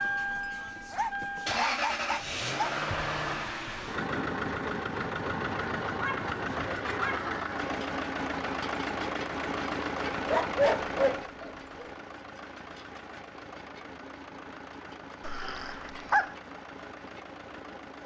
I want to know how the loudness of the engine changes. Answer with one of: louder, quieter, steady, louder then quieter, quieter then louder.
quieter.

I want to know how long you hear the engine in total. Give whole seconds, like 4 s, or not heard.
18 s.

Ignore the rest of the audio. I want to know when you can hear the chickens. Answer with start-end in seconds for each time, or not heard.
not heard.